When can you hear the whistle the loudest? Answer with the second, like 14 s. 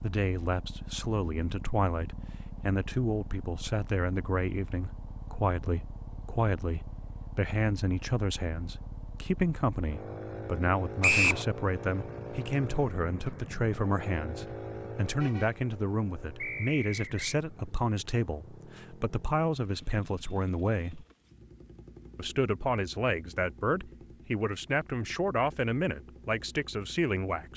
11 s.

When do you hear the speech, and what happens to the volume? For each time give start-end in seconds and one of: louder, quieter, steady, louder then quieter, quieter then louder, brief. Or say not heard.
0.0-21.1 steady
22.1-27.5 steady.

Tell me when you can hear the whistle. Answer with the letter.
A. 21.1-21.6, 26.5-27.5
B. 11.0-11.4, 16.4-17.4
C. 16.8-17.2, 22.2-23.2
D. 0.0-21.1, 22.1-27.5
B.